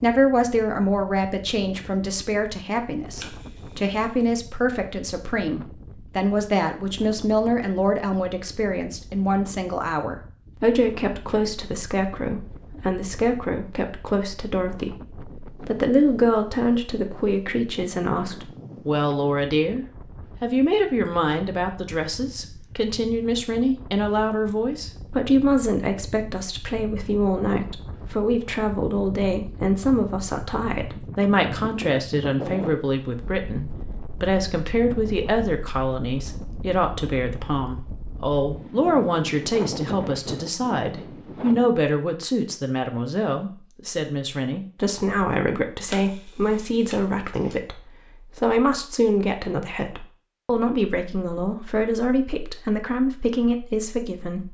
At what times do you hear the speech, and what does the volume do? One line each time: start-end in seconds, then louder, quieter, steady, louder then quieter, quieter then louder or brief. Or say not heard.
0.0-54.4 steady.